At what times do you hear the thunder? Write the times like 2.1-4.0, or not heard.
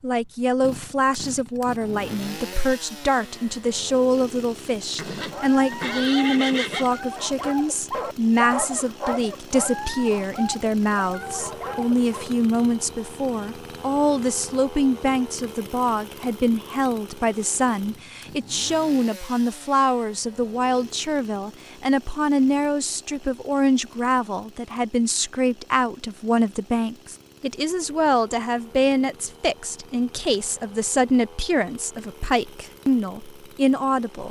not heard.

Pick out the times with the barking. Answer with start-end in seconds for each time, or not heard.
5.3-12.3.